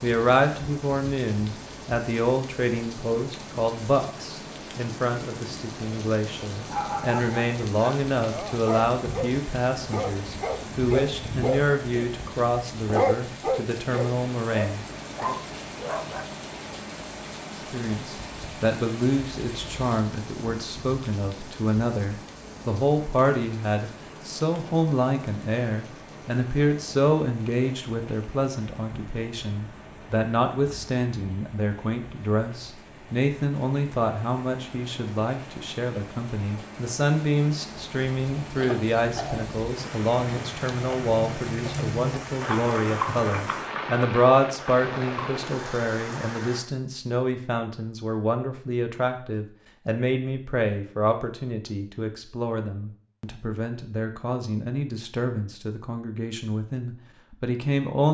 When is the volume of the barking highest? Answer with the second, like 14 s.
13 s.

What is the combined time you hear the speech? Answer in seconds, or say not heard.
56 s.